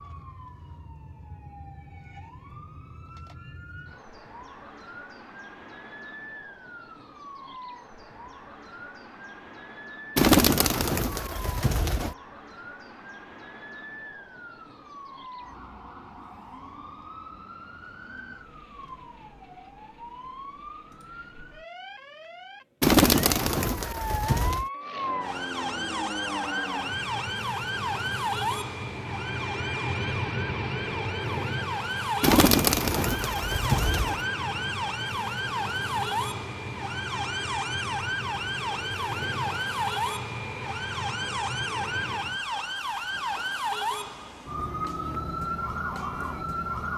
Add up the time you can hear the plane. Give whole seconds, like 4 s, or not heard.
18 s.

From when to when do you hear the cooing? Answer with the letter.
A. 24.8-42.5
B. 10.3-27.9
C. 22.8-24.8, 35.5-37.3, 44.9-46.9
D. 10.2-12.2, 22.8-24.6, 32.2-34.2
D.